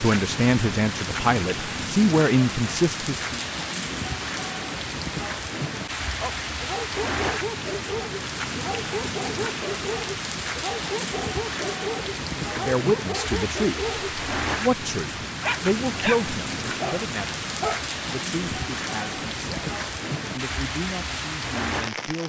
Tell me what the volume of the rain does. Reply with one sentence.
The loudness of the rain stays about the same.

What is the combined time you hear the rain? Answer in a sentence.
The rain can be heard for 22 seconds in total.